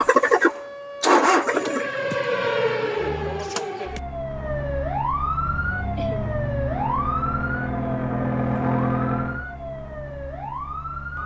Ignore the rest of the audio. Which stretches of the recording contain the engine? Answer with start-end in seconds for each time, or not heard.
0.0-3.5, 5.5-9.4.